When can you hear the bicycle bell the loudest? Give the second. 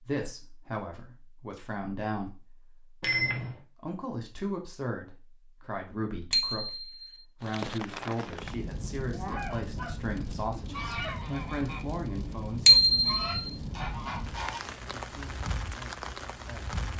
13 s.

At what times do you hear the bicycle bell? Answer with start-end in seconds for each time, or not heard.
3.0-3.5, 6.3-7.2, 12.7-13.5.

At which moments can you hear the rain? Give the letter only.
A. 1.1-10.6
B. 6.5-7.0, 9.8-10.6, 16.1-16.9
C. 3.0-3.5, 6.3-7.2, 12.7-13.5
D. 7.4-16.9
D.